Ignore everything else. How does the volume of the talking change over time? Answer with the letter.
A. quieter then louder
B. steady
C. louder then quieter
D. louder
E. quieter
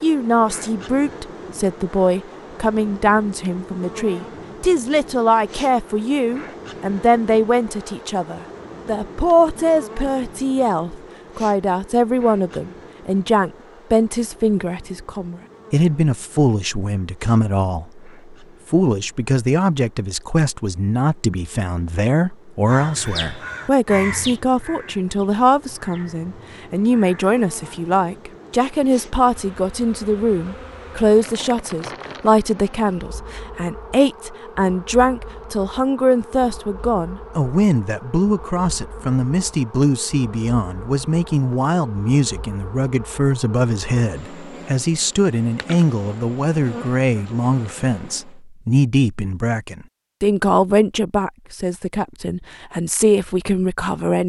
B.